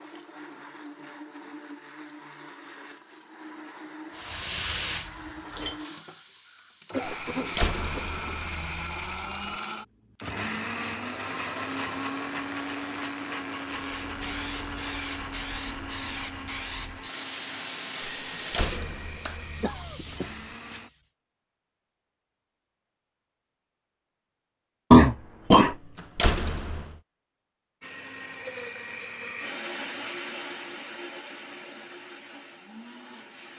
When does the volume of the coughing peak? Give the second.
25 s.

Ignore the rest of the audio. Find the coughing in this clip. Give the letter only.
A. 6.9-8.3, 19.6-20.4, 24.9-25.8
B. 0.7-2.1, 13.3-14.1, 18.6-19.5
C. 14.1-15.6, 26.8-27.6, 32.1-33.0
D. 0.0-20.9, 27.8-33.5
A.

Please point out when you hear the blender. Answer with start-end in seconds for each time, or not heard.
0.0-20.9, 27.8-33.5.